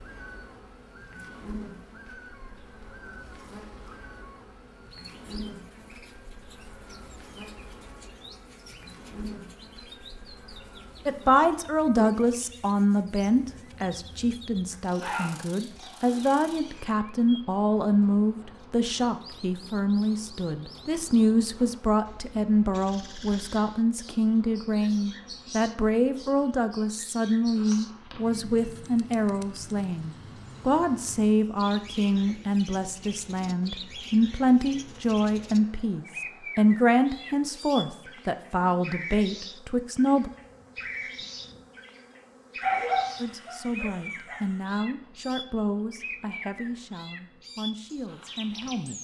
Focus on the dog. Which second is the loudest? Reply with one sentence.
The loudest moment of the dog is at 43 seconds.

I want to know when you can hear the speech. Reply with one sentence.
The speech can be heard from 11.1 to 40.3 s and from 43.2 to 48.9 s.